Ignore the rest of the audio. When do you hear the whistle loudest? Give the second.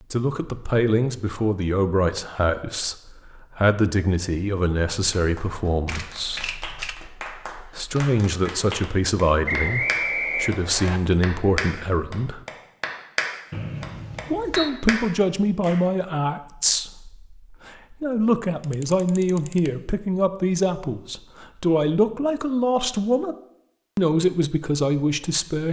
10 s.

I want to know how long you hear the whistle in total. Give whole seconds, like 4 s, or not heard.
3 s.